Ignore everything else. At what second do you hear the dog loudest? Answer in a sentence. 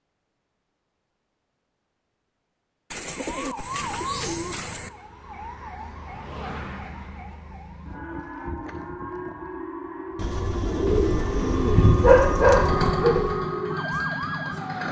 The loudest moment of the dog is at 12 seconds.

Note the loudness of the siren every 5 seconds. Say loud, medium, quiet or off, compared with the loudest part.
medium, medium, loud.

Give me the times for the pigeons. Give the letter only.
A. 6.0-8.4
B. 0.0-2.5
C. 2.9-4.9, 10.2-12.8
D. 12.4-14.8
C.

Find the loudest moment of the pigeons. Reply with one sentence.
The loudest moment of the pigeons is at 11 seconds.